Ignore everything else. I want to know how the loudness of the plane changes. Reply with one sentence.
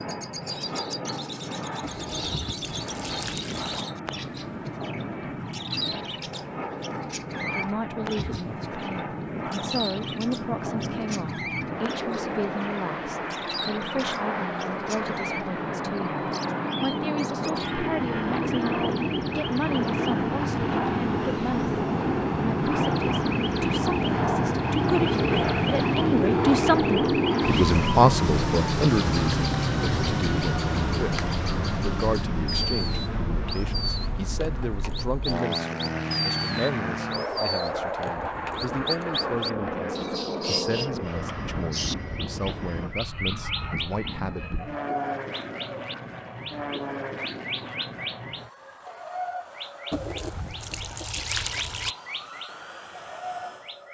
The loudness of the plane goes up, then down.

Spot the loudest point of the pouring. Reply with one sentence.
The loudest moment of the pouring is at 51 seconds.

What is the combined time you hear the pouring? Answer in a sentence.
You can hear the pouring for 4 seconds altogether.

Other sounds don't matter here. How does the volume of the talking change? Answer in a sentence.
The loudness of the talking goes up, then down.